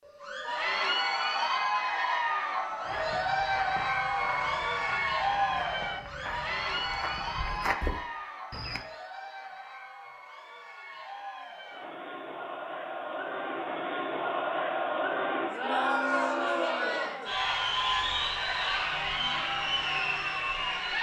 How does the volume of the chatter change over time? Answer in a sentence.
The volume of the chatter goes down, then up.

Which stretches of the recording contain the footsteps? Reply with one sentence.
The footsteps can be heard from 2.8 to 8.8 s.